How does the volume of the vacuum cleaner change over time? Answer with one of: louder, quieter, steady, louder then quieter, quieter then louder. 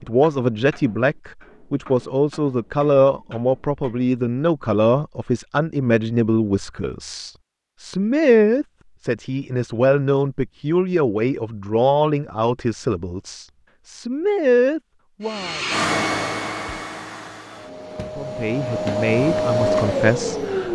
quieter then louder.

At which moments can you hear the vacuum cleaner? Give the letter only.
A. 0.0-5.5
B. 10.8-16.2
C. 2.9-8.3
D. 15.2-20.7
D.